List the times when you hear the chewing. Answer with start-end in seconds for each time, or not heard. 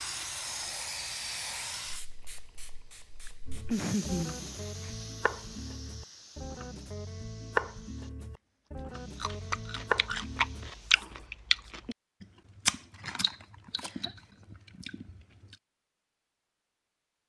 9.2-15.6.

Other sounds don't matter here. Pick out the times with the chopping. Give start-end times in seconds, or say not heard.
3.5-11.2.